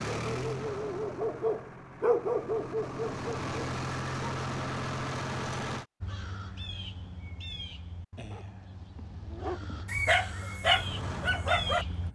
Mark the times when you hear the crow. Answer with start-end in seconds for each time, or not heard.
6.0-12.1.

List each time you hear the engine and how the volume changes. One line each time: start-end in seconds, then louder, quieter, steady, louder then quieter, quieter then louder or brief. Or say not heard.
0.0-5.8 quieter then louder
10.6-12.1 brief.